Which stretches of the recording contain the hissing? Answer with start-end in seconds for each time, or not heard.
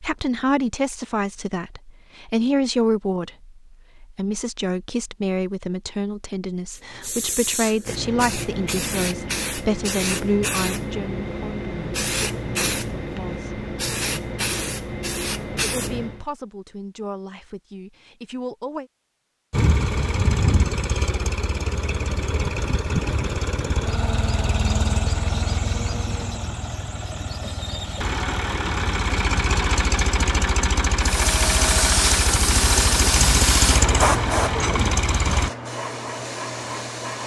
6.7-16.2, 31.0-37.2.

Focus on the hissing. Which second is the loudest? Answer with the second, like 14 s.
34 s.